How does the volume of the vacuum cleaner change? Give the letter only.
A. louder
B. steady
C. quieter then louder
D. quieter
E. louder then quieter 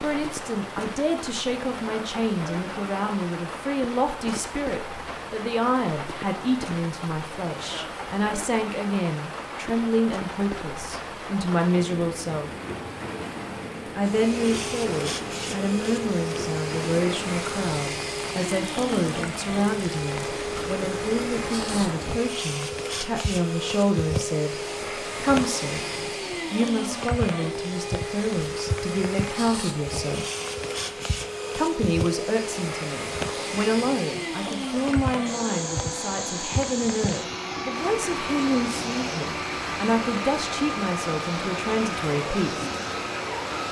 B.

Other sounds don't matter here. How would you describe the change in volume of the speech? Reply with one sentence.
The loudness of the speech stays about the same.